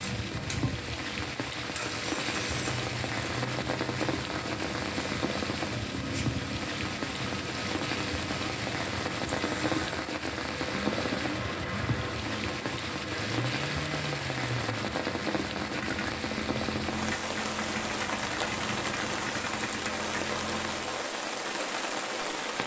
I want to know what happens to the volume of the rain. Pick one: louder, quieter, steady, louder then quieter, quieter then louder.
steady.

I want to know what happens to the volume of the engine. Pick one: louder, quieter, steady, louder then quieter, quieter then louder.
steady.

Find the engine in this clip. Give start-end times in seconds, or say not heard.
0.0-21.1.